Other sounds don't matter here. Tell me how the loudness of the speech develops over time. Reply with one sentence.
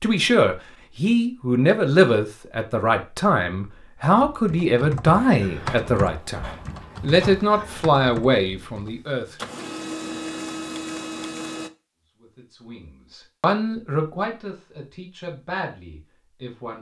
The volume of the speech goes down.